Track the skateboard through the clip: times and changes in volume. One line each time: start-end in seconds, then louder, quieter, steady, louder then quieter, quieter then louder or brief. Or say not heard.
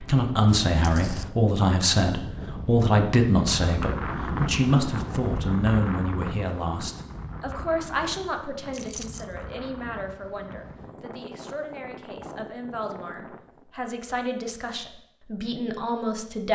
not heard.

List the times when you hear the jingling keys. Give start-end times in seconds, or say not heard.
0.7-1.3, 8.7-9.3.